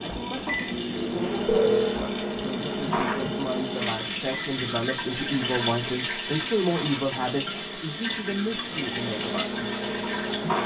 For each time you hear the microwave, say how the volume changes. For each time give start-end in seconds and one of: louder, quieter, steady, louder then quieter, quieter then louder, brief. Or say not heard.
0.0-10.6 quieter then louder.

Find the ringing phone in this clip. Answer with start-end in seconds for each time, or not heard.
0.9-2.0.